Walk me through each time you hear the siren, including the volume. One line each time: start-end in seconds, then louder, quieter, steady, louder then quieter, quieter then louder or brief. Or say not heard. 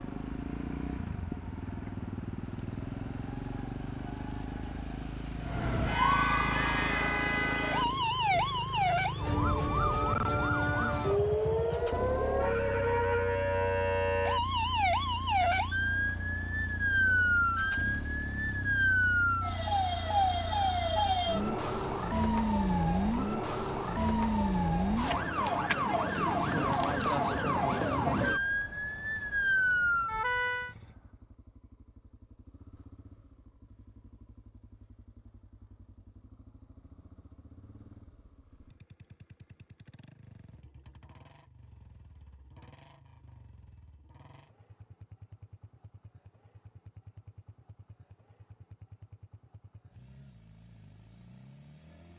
0.0-30.8 louder.